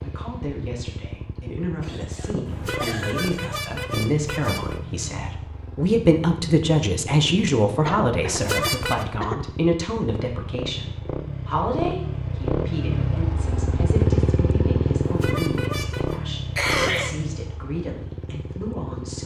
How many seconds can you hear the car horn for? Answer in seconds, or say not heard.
4 s.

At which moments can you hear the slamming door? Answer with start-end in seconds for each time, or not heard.
not heard.